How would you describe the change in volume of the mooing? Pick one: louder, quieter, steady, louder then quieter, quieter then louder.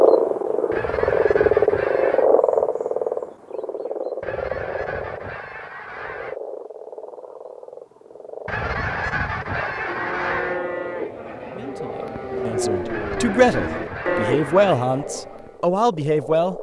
quieter then louder.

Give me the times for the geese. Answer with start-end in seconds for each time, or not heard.
0.7-2.3, 4.2-6.3, 8.4-10.6, 12.8-14.8.